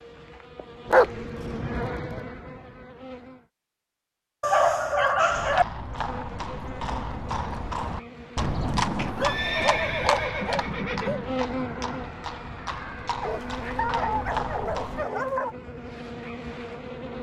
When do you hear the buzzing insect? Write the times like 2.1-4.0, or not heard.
0.0-3.5, 5.8-17.1.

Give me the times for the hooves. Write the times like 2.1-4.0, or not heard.
5.3-15.1.